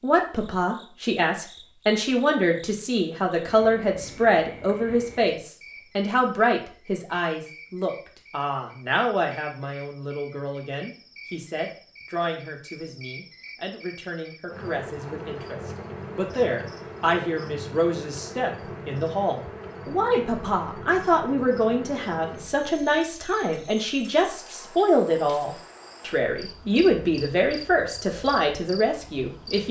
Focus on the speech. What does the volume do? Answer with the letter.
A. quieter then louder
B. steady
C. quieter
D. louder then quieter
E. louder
A.